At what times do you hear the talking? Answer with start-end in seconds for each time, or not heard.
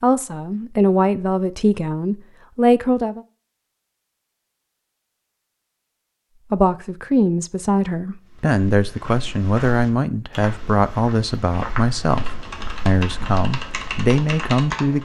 0.0-3.2, 6.5-14.9.